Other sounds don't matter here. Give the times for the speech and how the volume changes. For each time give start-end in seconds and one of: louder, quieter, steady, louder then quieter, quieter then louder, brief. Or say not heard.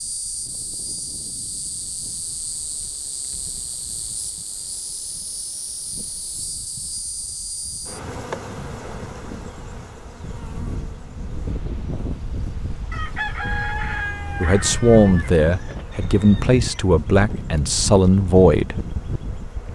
14.4-18.8 quieter then louder.